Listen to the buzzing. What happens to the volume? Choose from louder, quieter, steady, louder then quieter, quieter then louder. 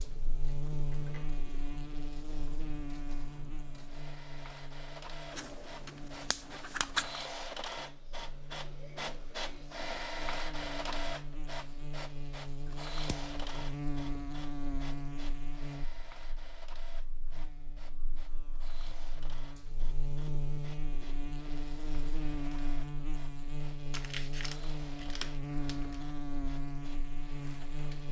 quieter then louder.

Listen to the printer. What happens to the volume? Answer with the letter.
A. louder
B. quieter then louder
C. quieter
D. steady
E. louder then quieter
E.